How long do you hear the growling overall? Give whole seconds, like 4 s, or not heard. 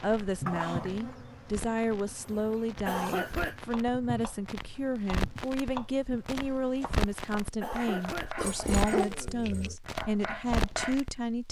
2 s.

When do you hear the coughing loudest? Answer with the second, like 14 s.
3 s.